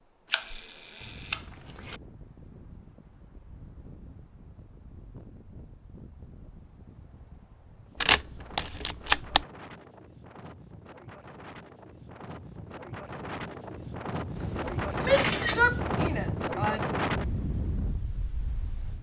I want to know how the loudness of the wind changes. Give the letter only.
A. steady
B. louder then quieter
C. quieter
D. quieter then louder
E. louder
E.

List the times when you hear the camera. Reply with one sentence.
The camera can be heard from 0.3 to 1.9 s, from 8.0 to 9.4 s and from 14.3 to 16.2 s.